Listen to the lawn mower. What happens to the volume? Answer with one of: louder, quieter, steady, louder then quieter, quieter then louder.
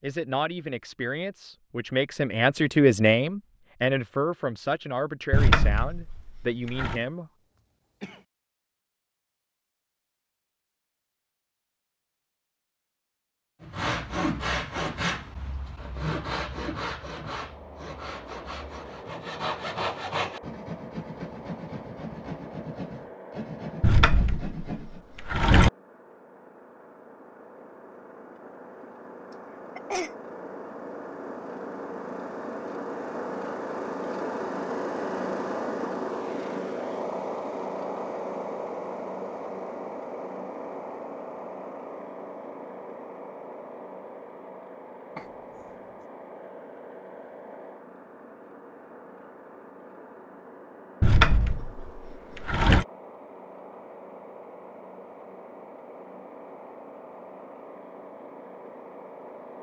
louder then quieter.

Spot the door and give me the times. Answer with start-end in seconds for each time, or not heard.
5.3-7.0, 23.8-25.7, 51.0-52.9.